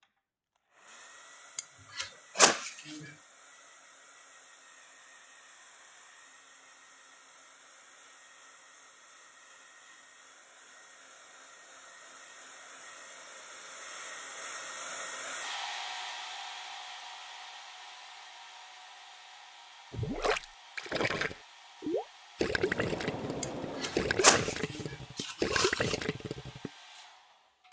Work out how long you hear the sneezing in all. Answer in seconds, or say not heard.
4 s.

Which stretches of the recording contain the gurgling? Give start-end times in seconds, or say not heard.
19.9-26.7.